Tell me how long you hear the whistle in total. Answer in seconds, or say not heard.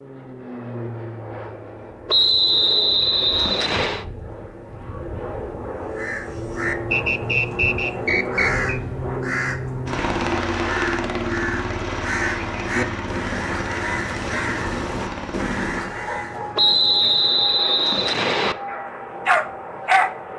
6 s.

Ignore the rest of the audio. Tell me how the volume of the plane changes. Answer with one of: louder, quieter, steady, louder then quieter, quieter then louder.
louder then quieter.